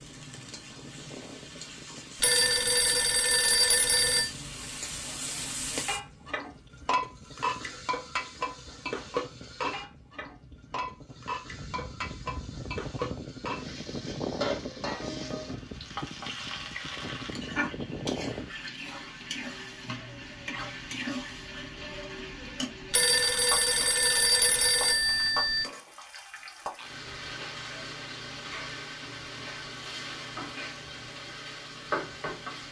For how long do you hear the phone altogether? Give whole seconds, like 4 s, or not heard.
5 s.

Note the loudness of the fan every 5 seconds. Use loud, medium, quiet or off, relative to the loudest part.
medium, quiet, loud, loud, off, off, off.